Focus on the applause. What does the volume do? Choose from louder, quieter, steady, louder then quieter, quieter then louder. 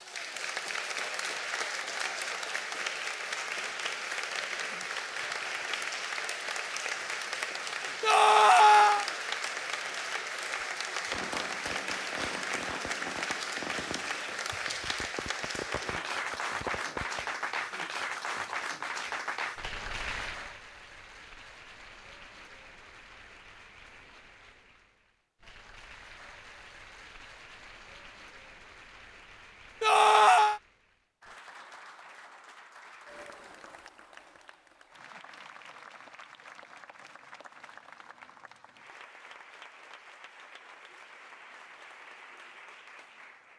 quieter.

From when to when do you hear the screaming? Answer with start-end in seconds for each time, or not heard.
8.0-9.1, 29.8-30.6.